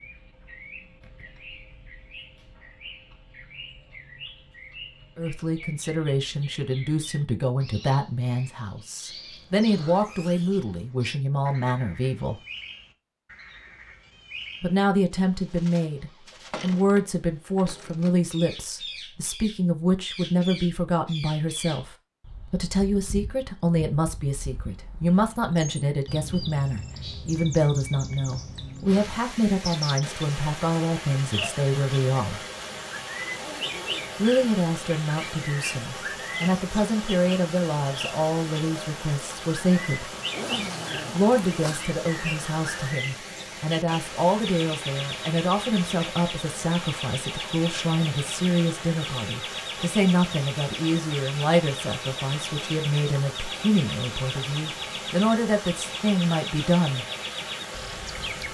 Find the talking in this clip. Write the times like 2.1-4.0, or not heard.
5.2-12.4, 14.6-32.4, 34.1-40.1, 41.1-57.0.